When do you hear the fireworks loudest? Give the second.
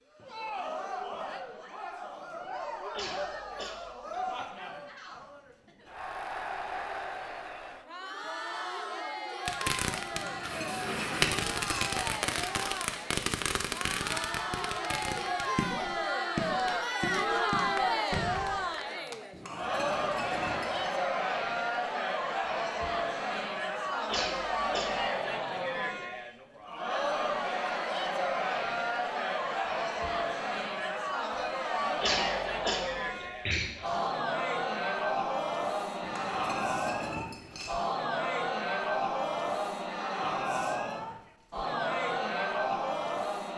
11 s.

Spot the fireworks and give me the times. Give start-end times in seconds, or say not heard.
9.4-18.6.